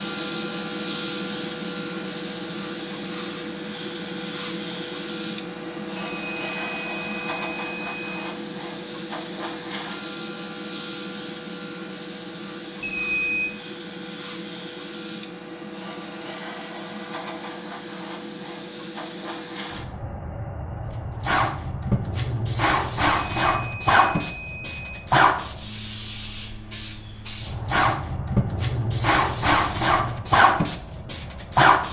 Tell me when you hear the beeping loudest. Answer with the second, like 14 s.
13 s.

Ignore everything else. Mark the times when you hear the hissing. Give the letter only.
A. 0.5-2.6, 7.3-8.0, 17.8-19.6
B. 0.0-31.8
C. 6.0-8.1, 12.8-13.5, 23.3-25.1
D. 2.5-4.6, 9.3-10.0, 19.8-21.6
B.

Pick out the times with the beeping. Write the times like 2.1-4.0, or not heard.
6.0-8.1, 12.8-13.5, 23.3-25.1.